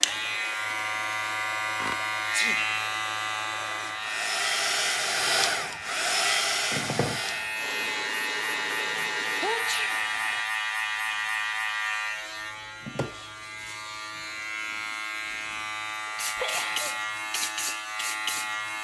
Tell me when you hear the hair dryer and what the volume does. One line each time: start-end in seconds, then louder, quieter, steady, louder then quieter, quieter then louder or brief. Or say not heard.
0.0-10.5 louder then quieter.